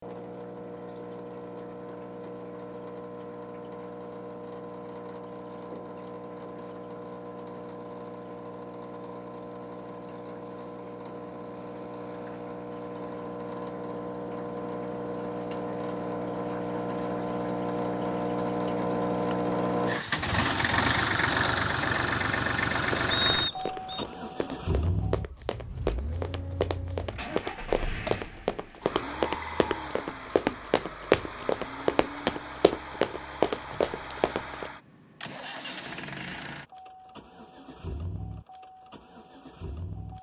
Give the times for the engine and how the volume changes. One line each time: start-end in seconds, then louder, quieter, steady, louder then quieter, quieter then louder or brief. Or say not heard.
0.0-40.1 louder then quieter.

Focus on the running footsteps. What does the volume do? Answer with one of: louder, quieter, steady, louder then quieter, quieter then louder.
louder.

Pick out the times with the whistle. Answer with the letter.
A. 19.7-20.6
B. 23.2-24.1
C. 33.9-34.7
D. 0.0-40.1
B.